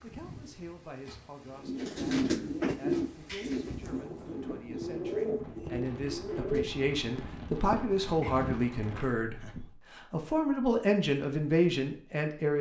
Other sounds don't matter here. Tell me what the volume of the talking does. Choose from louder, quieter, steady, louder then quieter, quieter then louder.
louder.